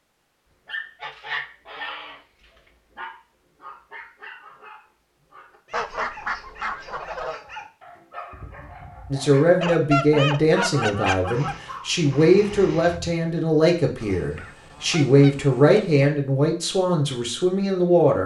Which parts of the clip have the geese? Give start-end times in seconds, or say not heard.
1.0-2.2, 5.7-7.4, 9.6-11.6, 14.0-16.1.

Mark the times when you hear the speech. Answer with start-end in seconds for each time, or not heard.
9.1-18.2.